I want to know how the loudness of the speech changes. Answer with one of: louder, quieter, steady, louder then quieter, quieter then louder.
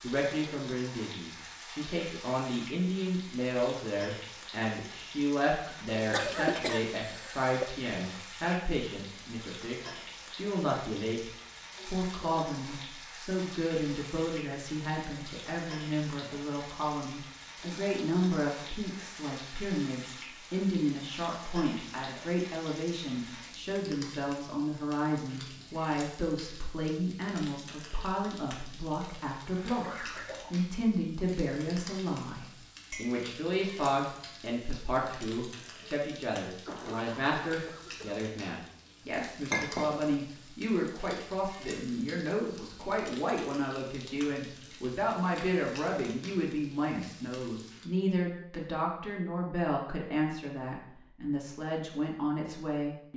steady.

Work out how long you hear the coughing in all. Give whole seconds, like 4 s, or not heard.
4 s.